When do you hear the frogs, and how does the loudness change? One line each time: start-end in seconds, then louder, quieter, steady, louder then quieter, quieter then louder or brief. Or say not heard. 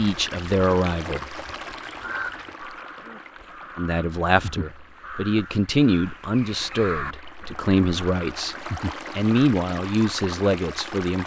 not heard.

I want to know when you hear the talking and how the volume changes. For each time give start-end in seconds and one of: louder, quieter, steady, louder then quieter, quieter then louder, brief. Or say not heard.
0.0-1.4 brief
3.8-11.2 steady.